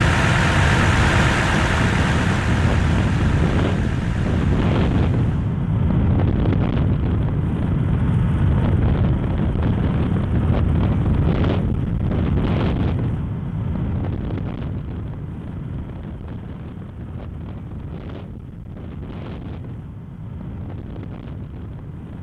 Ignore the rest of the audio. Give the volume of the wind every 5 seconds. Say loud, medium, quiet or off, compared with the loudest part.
loud, loud, loud, quiet, quiet.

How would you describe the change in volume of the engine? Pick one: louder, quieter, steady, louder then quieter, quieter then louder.
quieter.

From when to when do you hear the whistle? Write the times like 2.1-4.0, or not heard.
not heard.